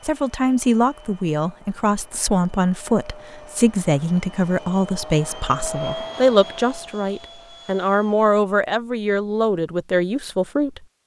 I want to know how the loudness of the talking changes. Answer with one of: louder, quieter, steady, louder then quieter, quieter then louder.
steady.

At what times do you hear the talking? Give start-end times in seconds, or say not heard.
0.0-10.8.